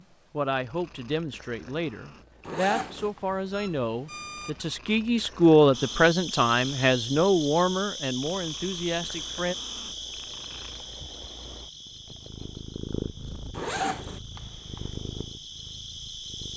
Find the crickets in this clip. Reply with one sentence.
You can hear the crickets from 5.7 to 16.5 s.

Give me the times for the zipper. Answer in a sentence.
You can hear the zipper from 2.5 to 3.1 s and from 13.5 to 14.2 s.